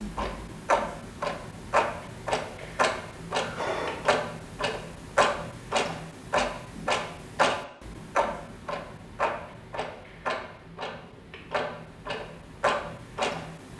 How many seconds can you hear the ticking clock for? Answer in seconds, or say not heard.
14 s.